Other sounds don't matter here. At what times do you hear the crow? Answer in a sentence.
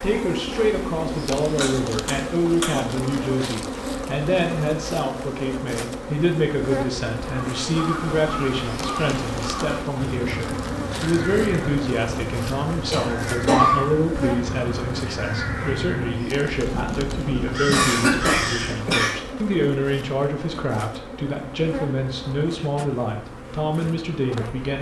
The crow can be heard from 7.4 to 19.0 s.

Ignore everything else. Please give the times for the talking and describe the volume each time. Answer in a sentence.
You can hear the talking from 0.0 to 24.7 s, at a steady volume.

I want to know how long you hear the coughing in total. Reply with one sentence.
The coughing can be heard for 4 seconds in total.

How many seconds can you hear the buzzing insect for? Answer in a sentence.
You can hear the buzzing insect for 25 seconds altogether.